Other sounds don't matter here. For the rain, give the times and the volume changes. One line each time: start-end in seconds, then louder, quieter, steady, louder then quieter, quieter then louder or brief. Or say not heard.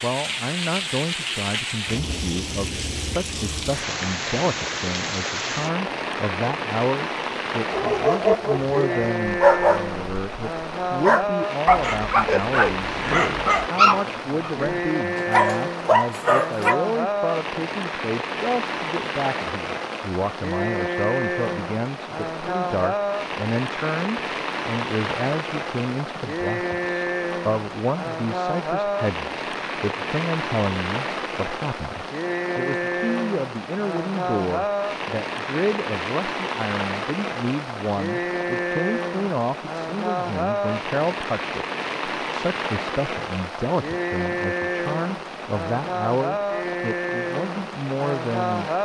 0.0-48.7 steady.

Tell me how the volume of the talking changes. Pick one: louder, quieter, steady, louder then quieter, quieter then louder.
steady.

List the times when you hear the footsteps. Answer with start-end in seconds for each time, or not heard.
not heard.